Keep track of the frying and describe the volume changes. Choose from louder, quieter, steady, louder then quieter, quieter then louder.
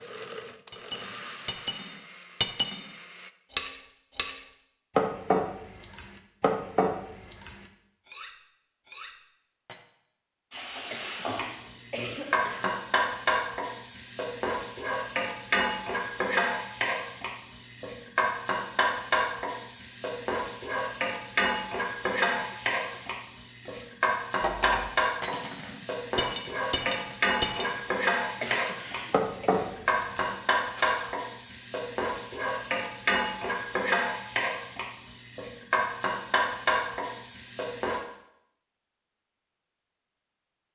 steady.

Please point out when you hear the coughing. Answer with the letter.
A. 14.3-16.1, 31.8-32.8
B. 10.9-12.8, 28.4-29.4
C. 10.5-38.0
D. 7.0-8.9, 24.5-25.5
B.